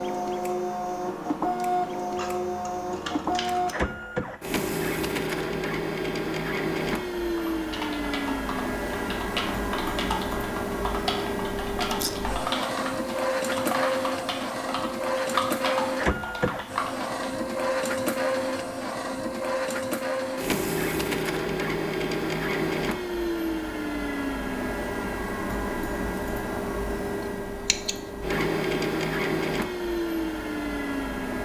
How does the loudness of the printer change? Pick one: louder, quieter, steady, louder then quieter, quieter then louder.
steady.